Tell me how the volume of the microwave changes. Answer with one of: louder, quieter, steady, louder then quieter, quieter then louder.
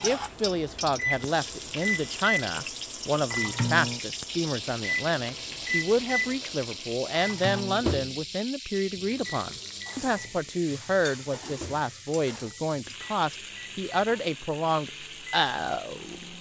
quieter.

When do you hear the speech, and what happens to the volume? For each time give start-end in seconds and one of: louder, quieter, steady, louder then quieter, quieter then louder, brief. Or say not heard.
0.0-16.2 steady.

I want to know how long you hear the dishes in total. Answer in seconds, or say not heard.
not heard.